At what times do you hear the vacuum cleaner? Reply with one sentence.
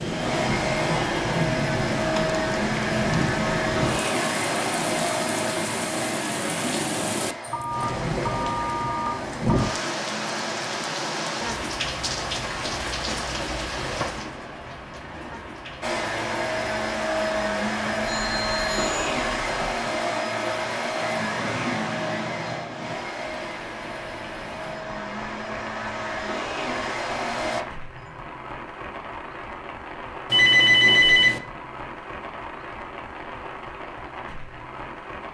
The vacuum cleaner can be heard from 0.0 to 10.7 s and from 15.8 to 27.6 s.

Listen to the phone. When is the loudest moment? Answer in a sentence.
The loudest moment of the phone is at 31 seconds.